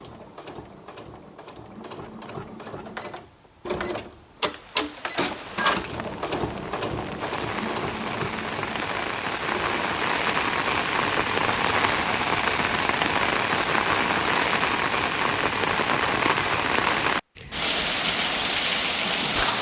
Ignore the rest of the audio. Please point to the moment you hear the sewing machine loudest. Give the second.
5 s.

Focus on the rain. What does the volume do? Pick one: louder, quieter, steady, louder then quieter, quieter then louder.
louder.